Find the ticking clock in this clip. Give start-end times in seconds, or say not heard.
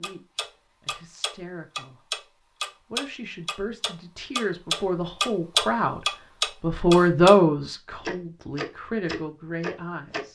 0.0-7.4, 8.0-10.2.